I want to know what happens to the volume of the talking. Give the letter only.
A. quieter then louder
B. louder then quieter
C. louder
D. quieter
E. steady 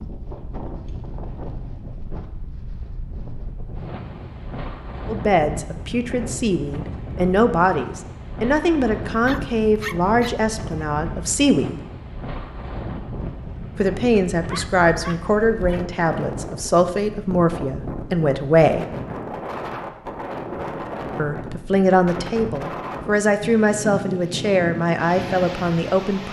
E.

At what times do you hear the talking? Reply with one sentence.
You can hear the talking from 5.0 to 11.8 s, from 13.8 to 18.9 s and from 21.1 to 26.2 s.